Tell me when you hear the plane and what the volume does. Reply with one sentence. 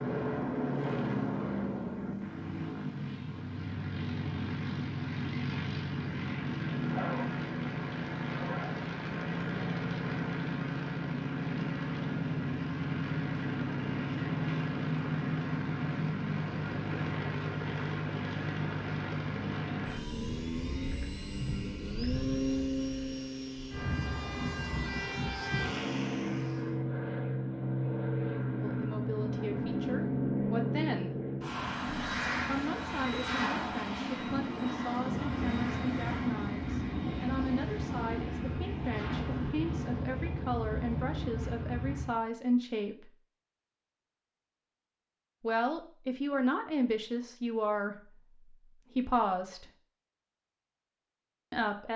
The plane can be heard from 0.0 to 42.2 s, at a steady volume.